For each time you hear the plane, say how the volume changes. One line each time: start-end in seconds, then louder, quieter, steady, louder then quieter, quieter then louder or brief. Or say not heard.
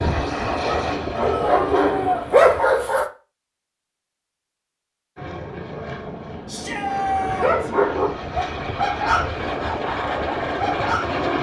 0.0-2.5 brief
5.2-11.3 louder.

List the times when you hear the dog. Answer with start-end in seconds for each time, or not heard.
0.0-3.0, 7.2-11.2.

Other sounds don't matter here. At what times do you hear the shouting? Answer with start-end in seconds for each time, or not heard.
1.2-2.2, 6.5-7.7.